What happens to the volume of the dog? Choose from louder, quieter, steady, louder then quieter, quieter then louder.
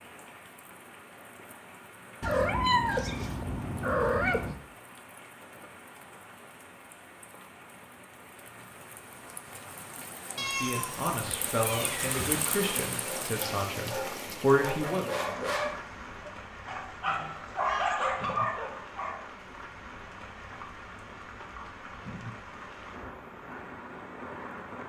louder.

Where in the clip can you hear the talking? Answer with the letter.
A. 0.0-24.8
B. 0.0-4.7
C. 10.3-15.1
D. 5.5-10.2
C.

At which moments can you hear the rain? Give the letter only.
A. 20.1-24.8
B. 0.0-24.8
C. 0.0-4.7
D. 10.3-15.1
B.